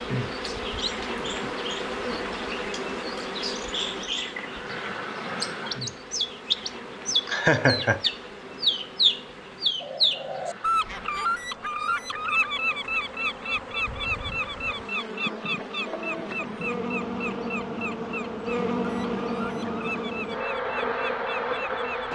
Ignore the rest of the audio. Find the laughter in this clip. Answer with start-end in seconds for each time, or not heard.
7.2-8.0.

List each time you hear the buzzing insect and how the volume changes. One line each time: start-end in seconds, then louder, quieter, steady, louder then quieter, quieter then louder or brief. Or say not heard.
0.0-22.1 quieter then louder.